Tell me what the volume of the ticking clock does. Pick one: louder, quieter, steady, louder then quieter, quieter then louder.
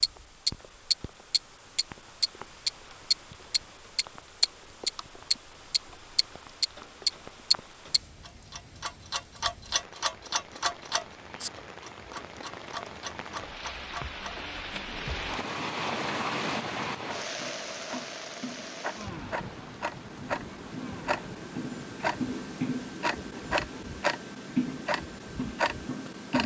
quieter then louder.